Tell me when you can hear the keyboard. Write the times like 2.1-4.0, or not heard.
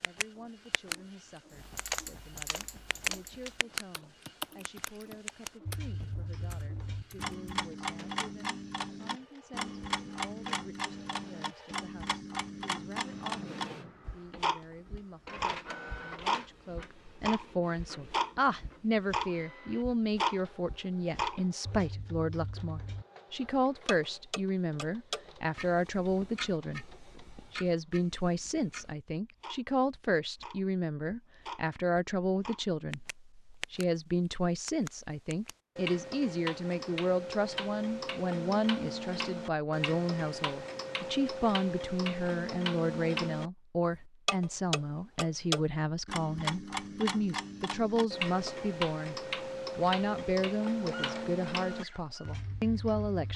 1.5-7.5.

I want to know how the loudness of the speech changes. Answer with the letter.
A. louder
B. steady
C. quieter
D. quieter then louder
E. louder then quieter
A.